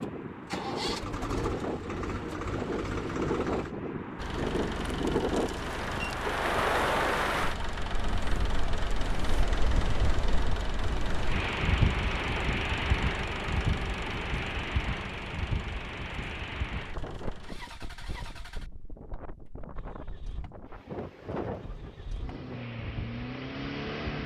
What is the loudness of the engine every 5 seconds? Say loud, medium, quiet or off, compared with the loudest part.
loud, loud, loud, medium, loud.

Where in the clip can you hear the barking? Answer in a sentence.
The barking can't be heard in this clip.